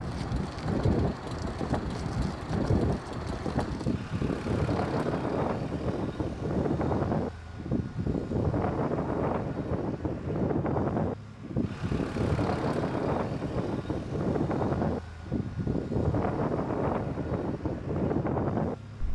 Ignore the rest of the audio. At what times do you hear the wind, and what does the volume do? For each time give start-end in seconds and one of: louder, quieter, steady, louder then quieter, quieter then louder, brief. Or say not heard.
0.0-19.0 steady.